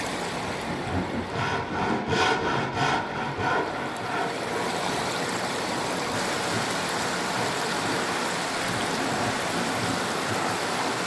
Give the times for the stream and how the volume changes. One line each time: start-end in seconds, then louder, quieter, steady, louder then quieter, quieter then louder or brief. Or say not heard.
0.0-11.0 louder.